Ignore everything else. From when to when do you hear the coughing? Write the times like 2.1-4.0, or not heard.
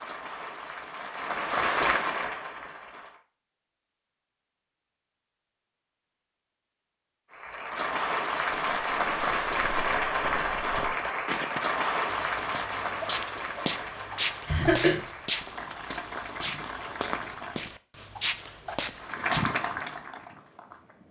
14.4-14.9.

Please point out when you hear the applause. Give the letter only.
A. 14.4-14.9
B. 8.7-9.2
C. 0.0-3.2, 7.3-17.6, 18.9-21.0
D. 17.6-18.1
C.